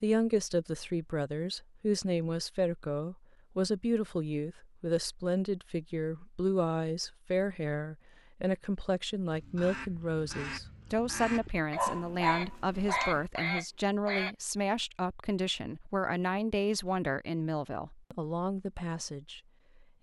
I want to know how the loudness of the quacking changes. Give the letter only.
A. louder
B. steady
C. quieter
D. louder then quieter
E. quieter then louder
A.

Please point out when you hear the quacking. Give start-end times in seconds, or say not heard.
9.3-14.3.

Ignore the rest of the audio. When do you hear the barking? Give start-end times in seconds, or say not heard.
11.8-13.2.